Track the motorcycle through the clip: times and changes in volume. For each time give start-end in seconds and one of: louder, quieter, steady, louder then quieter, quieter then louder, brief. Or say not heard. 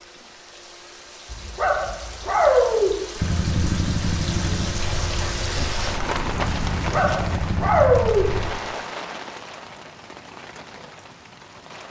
3.1-8.4 quieter then louder.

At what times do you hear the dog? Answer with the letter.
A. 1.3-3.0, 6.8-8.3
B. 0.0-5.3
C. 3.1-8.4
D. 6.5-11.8
A.